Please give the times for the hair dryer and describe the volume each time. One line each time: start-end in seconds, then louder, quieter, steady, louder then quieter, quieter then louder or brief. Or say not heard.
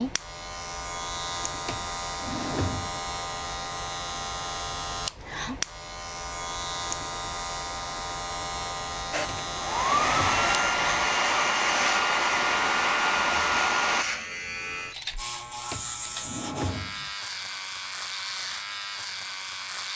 9.1-14.1 steady.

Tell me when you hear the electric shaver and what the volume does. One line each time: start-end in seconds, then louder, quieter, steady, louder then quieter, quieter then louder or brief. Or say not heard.
0.0-19.9 steady.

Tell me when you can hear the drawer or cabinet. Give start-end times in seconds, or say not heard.
1.6-3.1, 9.2-10.5, 15.7-17.1.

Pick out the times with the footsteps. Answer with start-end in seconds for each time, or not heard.
not heard.